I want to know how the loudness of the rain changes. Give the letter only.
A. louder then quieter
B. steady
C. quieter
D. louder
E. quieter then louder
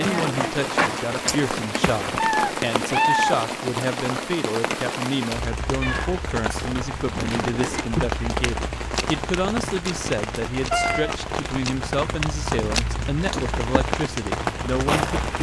B.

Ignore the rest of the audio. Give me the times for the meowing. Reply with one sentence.
You can hear the meowing from 2.1 to 3.4 s, from 5.8 to 7.8 s and from 10.7 to 11.2 s.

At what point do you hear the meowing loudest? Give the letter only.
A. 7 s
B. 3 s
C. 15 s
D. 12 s
B.